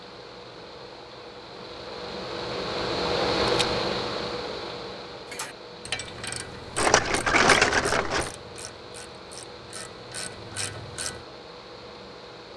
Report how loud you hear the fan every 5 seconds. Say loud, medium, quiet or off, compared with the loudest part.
loud, quiet, quiet.